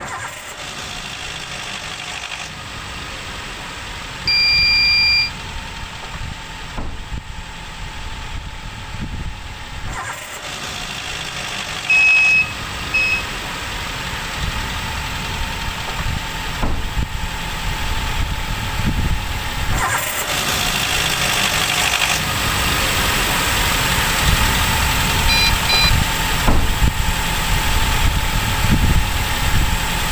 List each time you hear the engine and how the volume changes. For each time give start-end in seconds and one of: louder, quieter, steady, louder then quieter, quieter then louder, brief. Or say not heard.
0.0-30.0 louder.